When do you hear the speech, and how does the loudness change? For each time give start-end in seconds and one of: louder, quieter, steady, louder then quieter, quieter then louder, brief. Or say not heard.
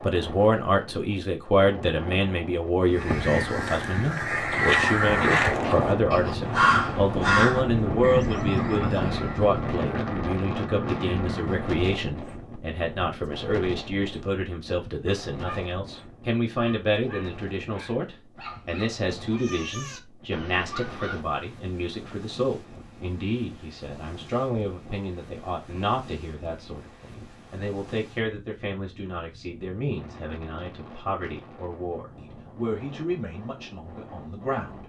0.0-34.8 quieter.